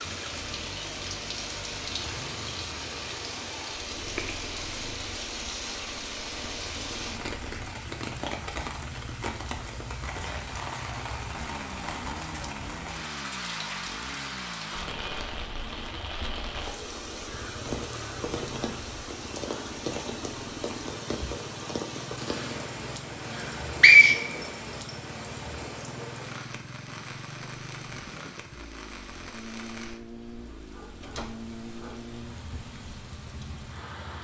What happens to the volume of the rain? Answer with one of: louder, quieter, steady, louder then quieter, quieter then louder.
quieter.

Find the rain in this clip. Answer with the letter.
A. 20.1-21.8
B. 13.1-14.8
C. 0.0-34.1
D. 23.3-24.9
C.